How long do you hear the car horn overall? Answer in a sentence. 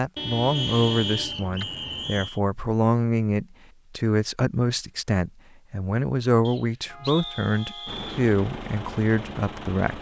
The car horn can be heard for 3 seconds in total.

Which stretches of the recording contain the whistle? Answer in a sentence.
The whistle can be heard from 0.6 to 2.4 s and from 6.4 to 8.2 s.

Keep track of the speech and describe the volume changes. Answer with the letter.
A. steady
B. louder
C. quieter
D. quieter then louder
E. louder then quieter
A.